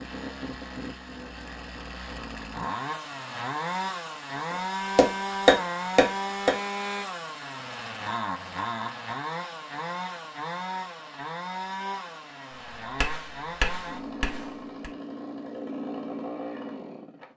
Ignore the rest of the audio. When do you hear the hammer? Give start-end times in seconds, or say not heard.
4.5-6.5, 12.6-14.9.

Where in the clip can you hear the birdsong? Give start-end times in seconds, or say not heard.
not heard.